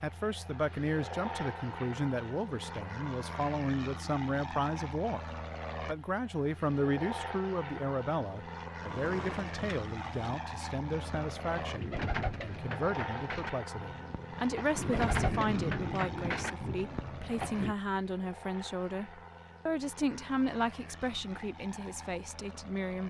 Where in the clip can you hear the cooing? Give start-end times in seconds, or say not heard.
8.8-17.8.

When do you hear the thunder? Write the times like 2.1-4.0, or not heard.
14.9-16.8.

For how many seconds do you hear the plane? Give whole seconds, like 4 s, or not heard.
23 s.